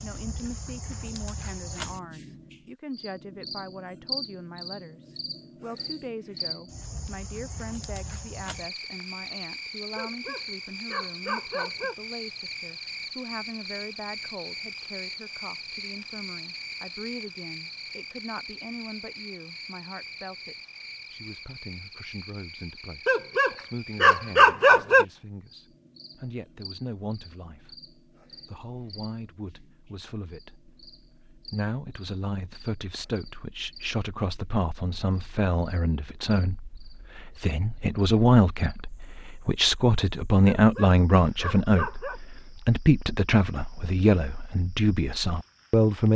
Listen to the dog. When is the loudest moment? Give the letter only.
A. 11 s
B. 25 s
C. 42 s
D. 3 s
B.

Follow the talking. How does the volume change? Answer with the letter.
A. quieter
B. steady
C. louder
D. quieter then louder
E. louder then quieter
C.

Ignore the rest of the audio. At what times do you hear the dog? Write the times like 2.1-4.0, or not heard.
9.9-11.9, 23.1-25.1, 40.5-42.2.